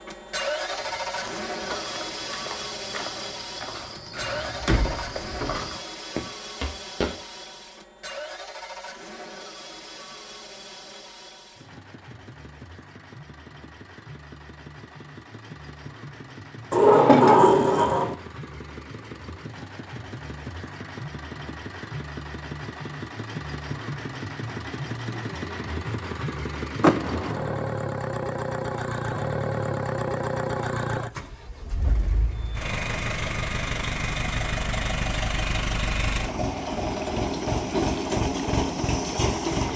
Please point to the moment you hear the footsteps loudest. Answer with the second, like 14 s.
7 s.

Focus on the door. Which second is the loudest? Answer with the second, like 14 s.
17 s.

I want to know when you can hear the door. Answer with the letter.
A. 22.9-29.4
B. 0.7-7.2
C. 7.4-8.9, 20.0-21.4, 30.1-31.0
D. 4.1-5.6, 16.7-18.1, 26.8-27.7
D.